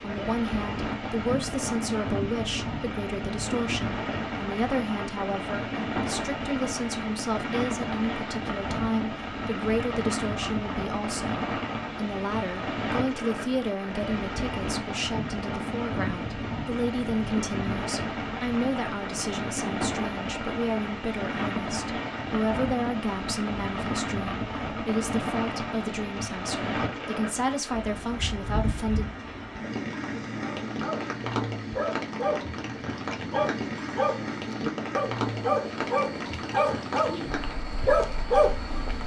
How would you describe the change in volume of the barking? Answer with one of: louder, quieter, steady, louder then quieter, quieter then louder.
louder.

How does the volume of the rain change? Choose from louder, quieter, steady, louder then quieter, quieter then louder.
steady.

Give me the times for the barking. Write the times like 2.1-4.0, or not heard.
30.6-39.0.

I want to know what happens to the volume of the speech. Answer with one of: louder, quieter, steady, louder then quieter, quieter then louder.
steady.